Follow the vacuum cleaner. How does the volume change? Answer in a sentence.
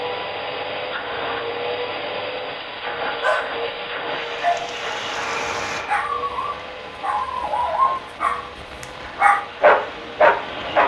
The volume of the vacuum cleaner goes down.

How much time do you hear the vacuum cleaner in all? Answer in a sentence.
The vacuum cleaner can be heard for 11 seconds in total.